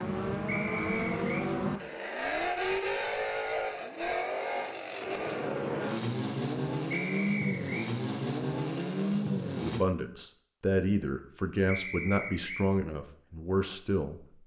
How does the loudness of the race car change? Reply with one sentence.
The loudness of the race car stays about the same.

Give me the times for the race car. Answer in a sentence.
The race car can be heard from 0.0 to 9.8 s.